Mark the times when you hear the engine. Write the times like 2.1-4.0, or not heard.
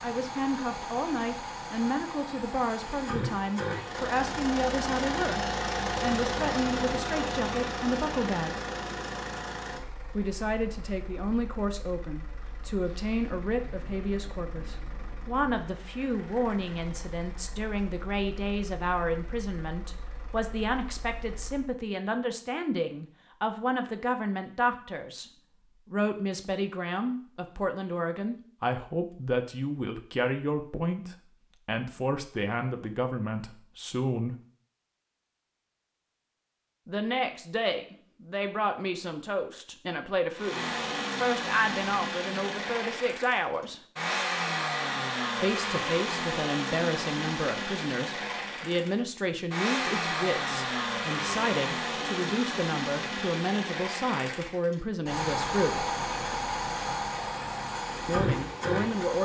0.0-21.8, 40.4-59.1.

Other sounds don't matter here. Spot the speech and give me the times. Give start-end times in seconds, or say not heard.
0.0-8.6, 10.2-25.2, 25.9-34.4, 36.9-43.8, 45.4-55.9, 58.0-59.1.